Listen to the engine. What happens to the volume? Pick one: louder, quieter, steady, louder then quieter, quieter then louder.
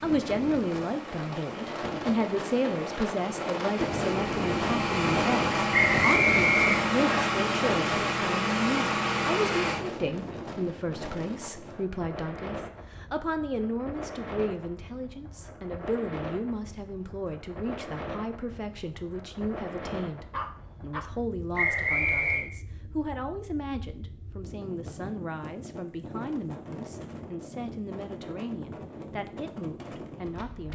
louder.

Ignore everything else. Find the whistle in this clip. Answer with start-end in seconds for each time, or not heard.
5.7-7.2, 21.6-22.4.